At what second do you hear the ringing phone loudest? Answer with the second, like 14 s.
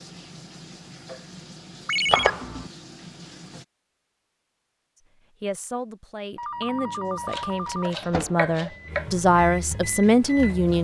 2 s.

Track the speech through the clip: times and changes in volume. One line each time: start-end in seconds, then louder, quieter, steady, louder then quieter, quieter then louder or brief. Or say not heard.
5.4-10.7 louder.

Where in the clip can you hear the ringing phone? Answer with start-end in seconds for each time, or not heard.
1.9-2.3, 6.3-8.2.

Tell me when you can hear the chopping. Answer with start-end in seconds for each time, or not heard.
2.0-2.7, 7.2-9.1.